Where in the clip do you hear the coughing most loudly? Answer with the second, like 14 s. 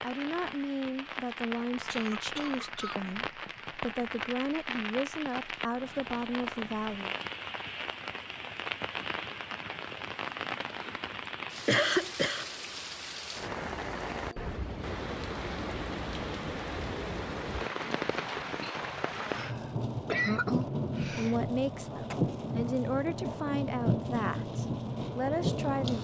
12 s.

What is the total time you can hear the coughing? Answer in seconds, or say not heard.
4 s.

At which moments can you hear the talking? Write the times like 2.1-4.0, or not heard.
0.0-7.2, 21.1-25.9.